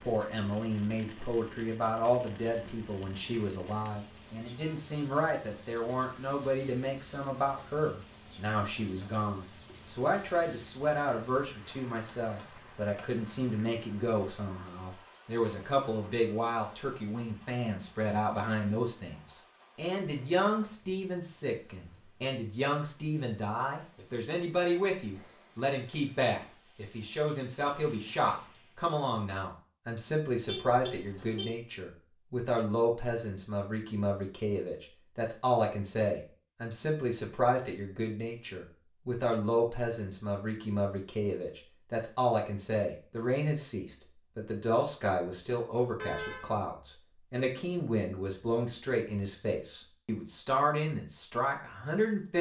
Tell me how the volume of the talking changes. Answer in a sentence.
The loudness of the talking stays about the same.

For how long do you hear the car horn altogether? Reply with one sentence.
The car horn can be heard for 2 seconds in total.